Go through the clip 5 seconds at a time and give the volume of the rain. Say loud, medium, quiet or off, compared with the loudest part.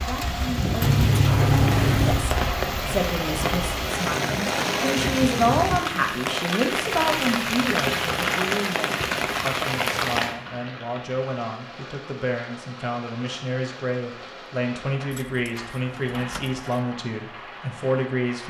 loud, loud, medium, quiet.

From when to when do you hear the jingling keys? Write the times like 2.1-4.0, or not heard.
0.8-2.4, 8.9-9.4, 15.1-16.6.